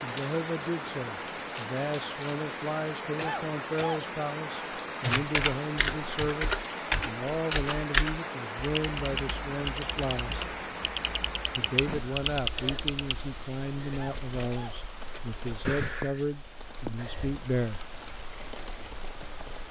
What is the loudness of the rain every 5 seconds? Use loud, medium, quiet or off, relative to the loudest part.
loud, loud, loud, medium.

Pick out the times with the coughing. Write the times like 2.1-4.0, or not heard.
3.1-4.0, 13.9-15.4.